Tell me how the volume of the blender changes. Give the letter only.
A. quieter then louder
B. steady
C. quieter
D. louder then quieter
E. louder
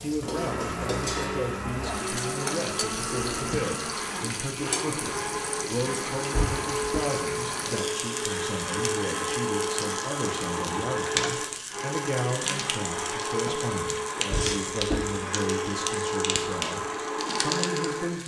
B.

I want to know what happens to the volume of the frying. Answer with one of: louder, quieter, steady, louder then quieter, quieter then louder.
steady.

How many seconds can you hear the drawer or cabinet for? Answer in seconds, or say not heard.
2 s.